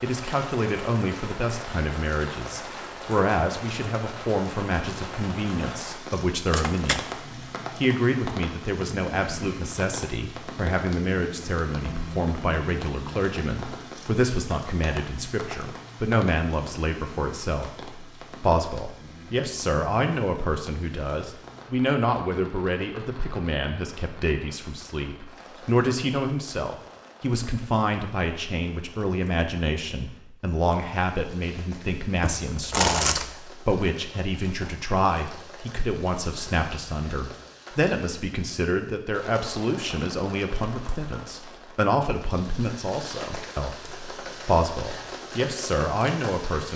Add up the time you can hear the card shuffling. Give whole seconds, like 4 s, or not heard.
2 s.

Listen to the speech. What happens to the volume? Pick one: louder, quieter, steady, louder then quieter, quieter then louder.
steady.